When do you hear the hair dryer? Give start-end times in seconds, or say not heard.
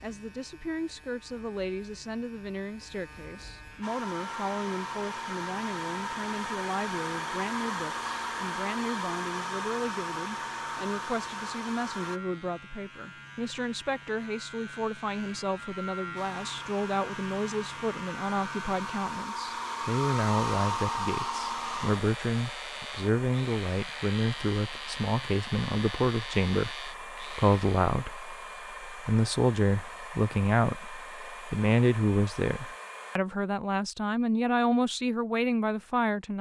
3.8-12.2, 16.1-33.2.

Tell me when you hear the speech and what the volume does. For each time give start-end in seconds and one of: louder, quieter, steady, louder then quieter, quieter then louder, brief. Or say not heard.
0.0-36.3 louder.